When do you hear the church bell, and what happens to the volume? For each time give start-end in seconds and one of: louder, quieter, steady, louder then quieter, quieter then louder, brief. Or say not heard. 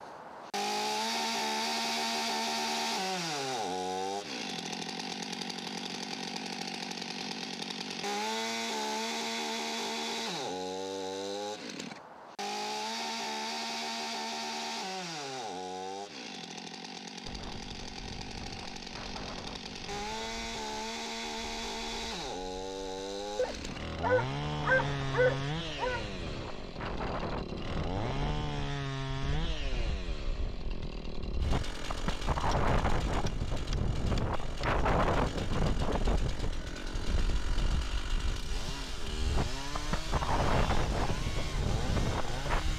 not heard.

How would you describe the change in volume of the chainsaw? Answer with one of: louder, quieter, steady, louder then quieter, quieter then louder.
quieter.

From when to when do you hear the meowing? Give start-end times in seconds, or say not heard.
not heard.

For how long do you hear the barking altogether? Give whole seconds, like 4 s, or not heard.
3 s.